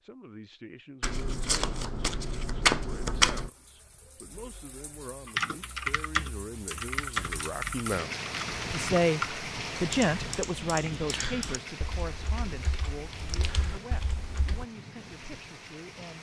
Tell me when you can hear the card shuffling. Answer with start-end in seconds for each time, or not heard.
1.0-3.5.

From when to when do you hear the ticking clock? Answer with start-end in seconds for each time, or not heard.
not heard.